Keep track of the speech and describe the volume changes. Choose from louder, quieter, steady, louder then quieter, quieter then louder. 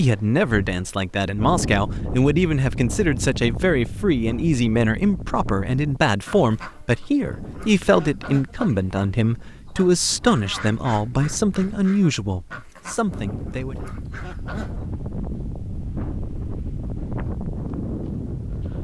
steady.